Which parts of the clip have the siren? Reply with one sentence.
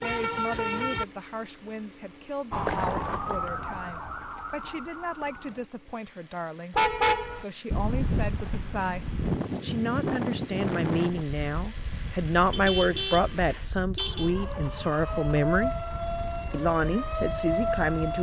The siren can be heard from 2.5 to 5.7 s and from 14.2 to 18.1 s.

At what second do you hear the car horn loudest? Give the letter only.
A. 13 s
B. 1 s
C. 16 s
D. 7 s
D.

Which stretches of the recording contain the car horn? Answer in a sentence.
You can hear the car horn from 0.0 to 1.1 s, from 6.7 to 7.5 s and from 12.5 to 14.3 s.